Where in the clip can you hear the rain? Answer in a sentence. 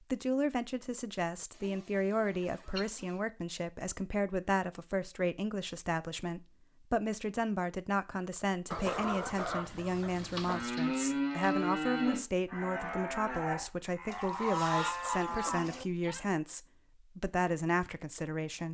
You can't hear the rain here.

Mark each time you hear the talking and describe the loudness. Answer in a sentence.
The talking can be heard from 0.0 to 18.6 s, at a steady volume.